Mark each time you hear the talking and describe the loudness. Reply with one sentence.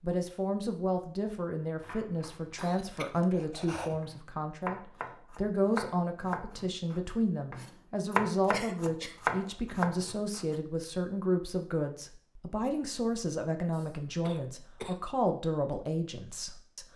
The talking can be heard from 0.0 to 16.9 s, at a steady volume.